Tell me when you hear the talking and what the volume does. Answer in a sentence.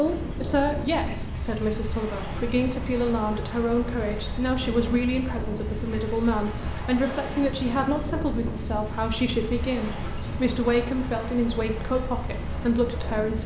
You can hear the talking from 0.0 to 13.4 s, at a steady volume.